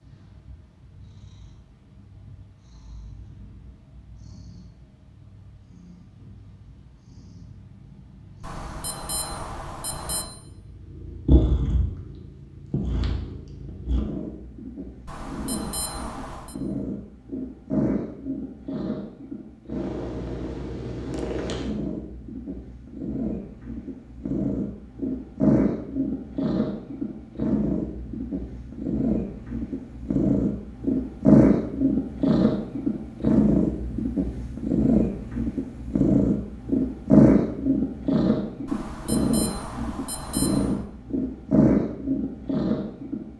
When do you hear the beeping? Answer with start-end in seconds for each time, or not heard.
8.4-10.2, 15.1-16.6, 38.6-40.9.